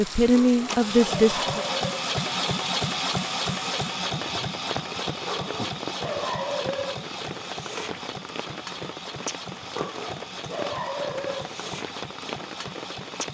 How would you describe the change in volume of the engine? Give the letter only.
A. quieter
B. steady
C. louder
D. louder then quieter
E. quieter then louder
A.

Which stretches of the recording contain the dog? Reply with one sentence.
You can hear the dog from 0.3 to 2.1 s, from 5.2 to 7.0 s and from 9.8 to 11.6 s.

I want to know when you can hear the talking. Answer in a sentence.
You can hear the talking from 0.0 to 1.6 s.